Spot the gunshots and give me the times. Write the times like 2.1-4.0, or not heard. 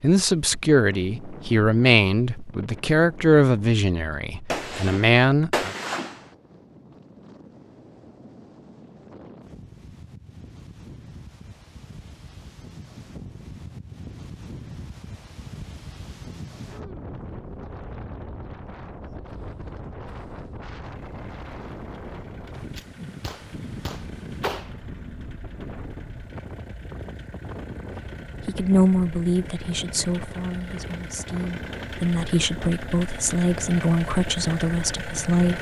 4.5-6.2, 22.4-24.8.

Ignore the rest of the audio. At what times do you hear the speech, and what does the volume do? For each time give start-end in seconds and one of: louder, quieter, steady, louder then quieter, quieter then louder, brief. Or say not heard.
0.0-5.8 steady
28.4-35.5 quieter then louder.